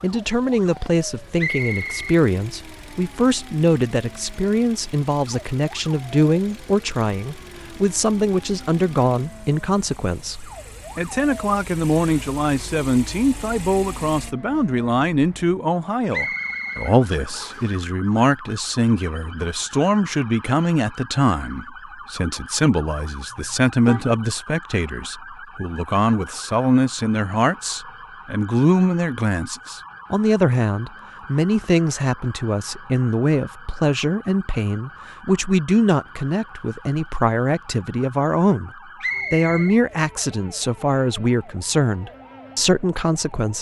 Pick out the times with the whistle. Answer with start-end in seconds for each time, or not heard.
1.4-2.2, 16.1-17.7, 39.0-39.8.